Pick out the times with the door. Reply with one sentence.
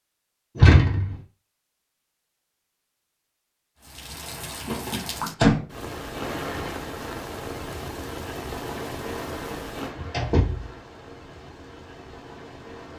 You can hear the door from 0.6 to 1.1 s, from 4.7 to 5.6 s and from 9.5 to 10.7 s.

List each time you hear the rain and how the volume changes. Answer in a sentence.
The rain can be heard from 3.8 to 12.9 s, getting quieter.